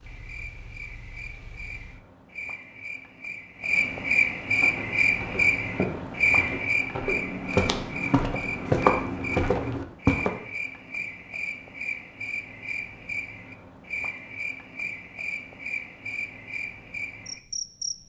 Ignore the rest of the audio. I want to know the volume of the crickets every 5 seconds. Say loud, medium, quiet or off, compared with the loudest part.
loud, loud, medium, medium.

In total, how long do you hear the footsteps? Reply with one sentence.
You can hear the footsteps for 6 seconds altogether.